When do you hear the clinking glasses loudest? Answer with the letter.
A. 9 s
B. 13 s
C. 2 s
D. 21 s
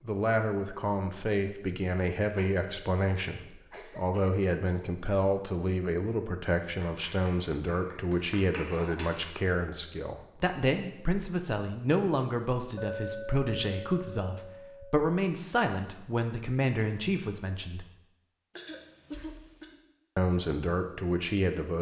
B.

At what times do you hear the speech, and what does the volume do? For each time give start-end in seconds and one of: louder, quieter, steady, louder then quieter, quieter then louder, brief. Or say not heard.
0.0-17.9 steady
20.1-21.7 brief.